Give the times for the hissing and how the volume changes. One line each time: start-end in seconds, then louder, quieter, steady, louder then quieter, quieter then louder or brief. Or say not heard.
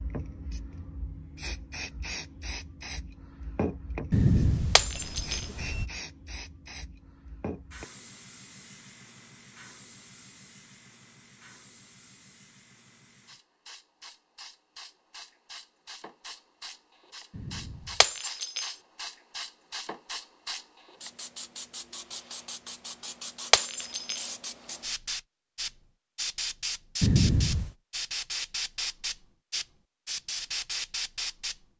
0.0-31.6 quieter then louder.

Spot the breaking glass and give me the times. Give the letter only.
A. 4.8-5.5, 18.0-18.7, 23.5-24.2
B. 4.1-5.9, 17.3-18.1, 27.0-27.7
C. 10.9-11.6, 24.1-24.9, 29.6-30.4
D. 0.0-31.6
A.